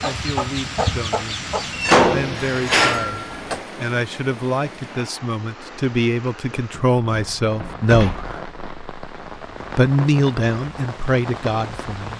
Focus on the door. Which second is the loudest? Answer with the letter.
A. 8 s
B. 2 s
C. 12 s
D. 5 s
B.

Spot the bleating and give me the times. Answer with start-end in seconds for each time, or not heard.
not heard.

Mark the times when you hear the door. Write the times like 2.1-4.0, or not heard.
1.7-3.6, 6.7-8.4.